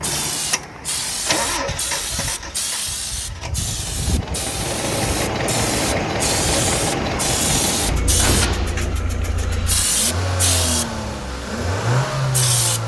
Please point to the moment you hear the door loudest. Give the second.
8 s.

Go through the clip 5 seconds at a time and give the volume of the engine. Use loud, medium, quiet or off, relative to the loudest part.
medium, loud, loud.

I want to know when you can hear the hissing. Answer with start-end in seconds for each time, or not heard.
0.0-12.8.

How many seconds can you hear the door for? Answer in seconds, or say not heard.
2 s.